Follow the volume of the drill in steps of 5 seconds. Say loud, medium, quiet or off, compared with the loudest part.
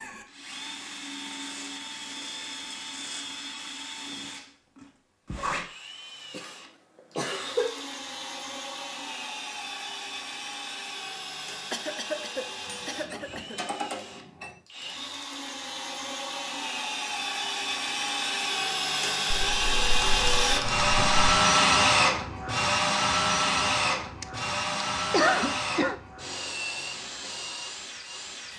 quiet, quiet, quiet, medium, loud, medium.